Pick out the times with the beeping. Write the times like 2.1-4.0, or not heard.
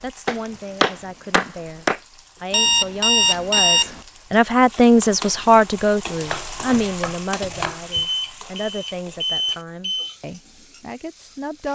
2.5-4.0, 7.4-10.2.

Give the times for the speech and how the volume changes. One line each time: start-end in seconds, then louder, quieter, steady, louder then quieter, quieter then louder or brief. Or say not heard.
0.0-11.7 louder then quieter.